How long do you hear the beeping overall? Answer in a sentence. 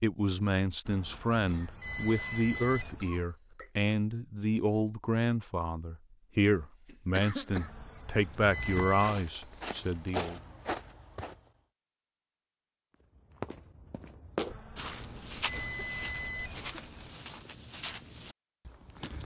You can hear the beeping for 7 seconds altogether.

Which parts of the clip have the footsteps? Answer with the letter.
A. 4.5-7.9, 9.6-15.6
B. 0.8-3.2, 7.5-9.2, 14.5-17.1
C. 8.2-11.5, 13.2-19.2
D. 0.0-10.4
C.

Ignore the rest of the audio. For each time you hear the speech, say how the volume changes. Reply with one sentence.
You can hear the speech from 0.0 to 10.4 s, at a steady volume.